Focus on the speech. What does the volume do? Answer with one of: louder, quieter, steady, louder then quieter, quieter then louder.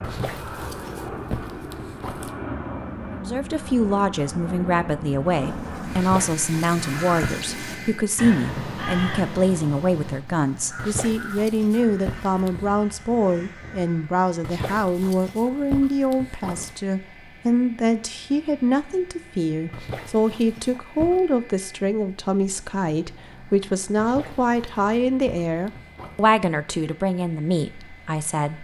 steady.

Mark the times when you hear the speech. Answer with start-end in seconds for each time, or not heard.
3.1-28.5.